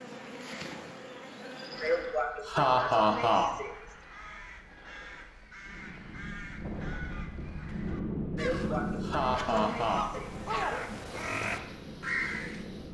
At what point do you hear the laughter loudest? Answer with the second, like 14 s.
3 s.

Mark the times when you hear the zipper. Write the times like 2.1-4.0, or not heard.
not heard.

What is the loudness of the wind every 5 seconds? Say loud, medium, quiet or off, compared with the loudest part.
off, loud, medium.